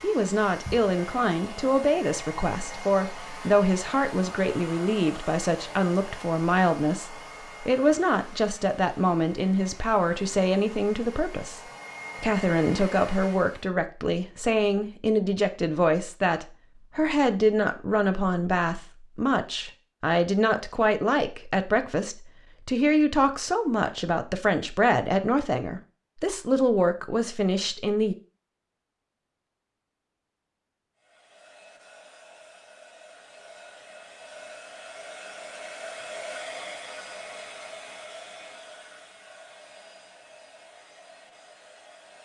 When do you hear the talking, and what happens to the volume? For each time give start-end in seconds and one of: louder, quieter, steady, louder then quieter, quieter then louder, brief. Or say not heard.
0.0-11.6 steady
12.2-28.1 steady.